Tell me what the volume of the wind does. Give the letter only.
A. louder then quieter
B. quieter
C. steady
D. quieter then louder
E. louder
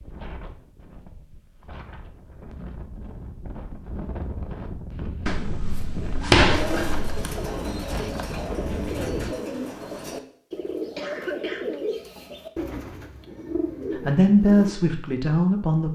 E.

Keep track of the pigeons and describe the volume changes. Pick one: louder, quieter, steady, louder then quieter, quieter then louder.
steady.